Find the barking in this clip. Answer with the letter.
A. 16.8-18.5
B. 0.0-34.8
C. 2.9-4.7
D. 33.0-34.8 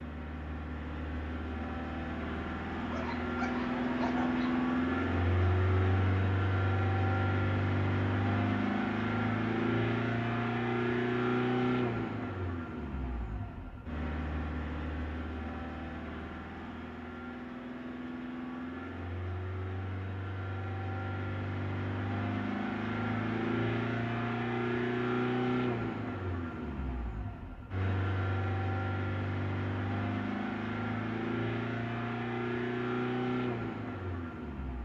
C.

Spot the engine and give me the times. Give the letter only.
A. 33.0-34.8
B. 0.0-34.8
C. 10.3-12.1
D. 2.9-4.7
B.